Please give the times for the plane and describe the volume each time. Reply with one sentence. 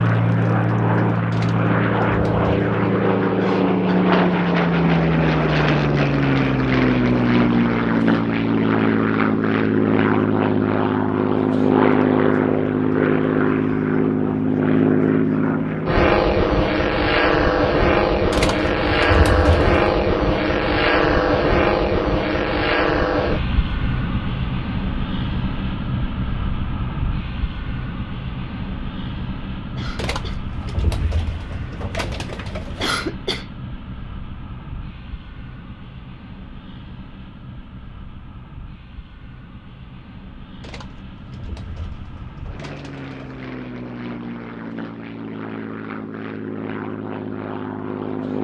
You can hear the plane from 0.0 to 48.3 s, getting quieter.